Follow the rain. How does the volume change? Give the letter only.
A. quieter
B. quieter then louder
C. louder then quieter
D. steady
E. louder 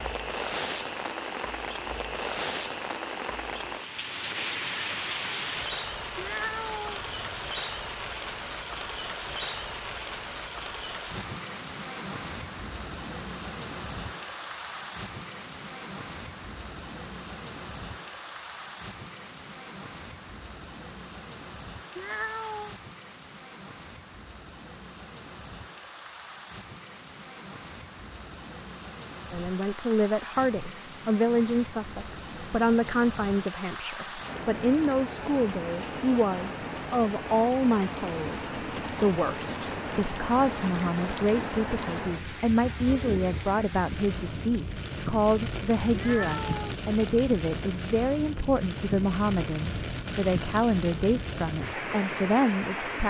B.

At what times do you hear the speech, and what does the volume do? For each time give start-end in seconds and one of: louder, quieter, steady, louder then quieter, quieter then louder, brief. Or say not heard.
29.3-53.0 steady.